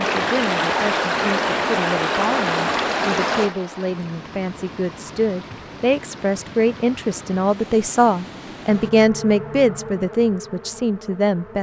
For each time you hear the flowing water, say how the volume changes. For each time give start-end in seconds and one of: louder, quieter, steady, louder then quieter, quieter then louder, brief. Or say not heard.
0.0-8.9 quieter.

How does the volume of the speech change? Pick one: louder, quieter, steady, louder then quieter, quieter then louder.
louder.